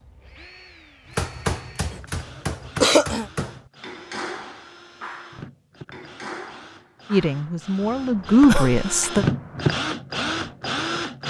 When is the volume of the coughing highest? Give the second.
3 s.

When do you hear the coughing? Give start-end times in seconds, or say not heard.
2.8-3.2, 8.4-9.1.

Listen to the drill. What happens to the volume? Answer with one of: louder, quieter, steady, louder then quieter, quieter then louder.
louder.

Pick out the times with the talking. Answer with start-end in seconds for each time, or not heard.
7.1-9.2.